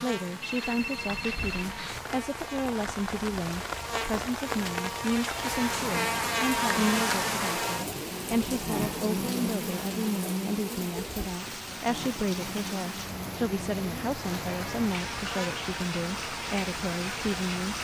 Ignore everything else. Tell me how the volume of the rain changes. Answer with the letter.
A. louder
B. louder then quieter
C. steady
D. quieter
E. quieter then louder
C.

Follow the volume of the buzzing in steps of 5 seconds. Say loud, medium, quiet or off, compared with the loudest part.
medium, loud, medium, medium.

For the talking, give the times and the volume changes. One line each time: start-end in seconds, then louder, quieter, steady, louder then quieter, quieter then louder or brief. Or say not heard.
0.0-17.7 steady.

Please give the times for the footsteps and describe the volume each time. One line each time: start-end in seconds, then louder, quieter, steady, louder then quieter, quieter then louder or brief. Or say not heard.
not heard.